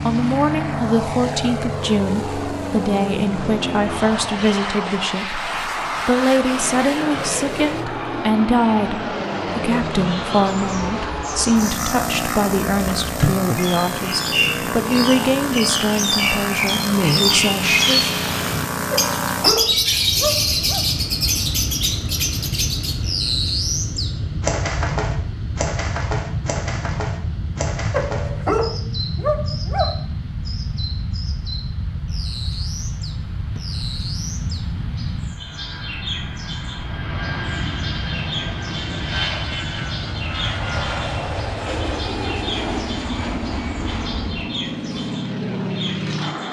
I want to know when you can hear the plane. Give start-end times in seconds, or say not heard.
0.0-46.4.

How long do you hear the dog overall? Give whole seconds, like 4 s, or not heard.
4 s.